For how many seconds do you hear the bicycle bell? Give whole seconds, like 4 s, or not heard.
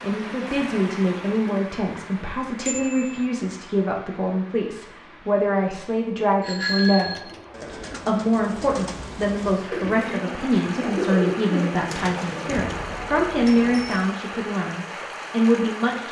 3 s.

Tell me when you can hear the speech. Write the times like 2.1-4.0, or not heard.
0.0-16.0.